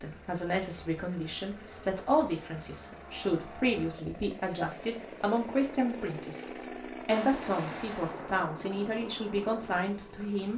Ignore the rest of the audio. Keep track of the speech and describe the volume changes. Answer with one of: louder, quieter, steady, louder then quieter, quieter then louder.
steady.